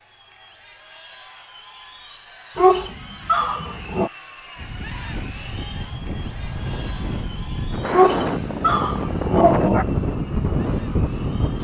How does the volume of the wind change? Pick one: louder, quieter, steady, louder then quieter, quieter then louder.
louder.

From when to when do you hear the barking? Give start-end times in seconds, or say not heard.
2.5-4.1, 7.9-9.8.